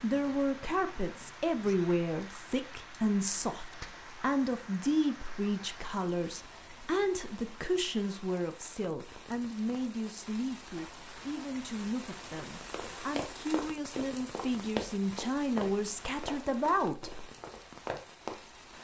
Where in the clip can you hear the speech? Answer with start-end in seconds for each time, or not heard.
0.0-17.2.